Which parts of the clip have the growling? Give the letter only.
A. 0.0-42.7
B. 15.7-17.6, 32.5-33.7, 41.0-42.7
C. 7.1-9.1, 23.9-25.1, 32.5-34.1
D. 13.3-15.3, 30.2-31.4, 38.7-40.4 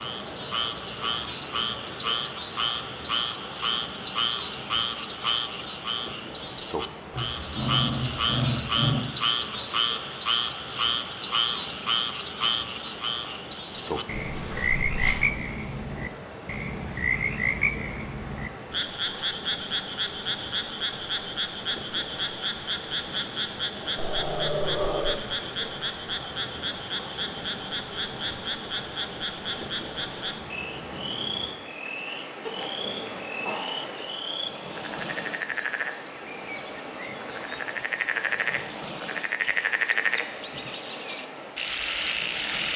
C.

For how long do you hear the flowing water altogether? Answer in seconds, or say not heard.
43 s.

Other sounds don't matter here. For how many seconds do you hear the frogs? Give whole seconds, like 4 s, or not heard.
43 s.